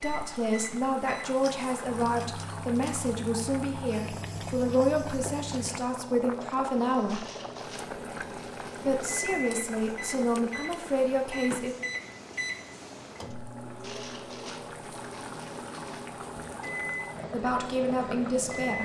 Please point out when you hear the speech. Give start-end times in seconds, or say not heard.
0.0-7.2, 8.8-11.8, 17.3-18.8.